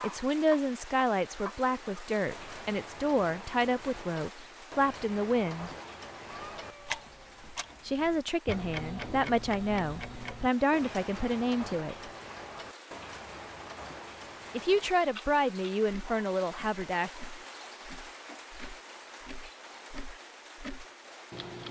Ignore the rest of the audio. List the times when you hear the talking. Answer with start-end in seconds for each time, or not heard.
0.0-5.7, 7.8-12.1, 14.5-17.1.